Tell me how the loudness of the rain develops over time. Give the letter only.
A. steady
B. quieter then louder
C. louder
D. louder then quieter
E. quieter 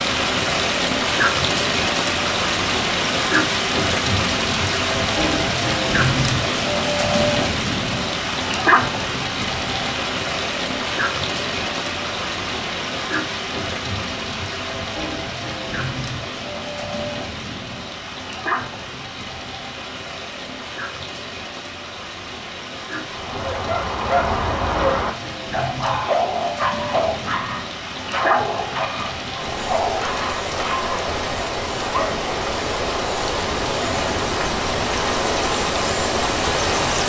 B.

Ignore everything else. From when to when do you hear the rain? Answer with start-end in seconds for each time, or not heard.
0.0-37.0.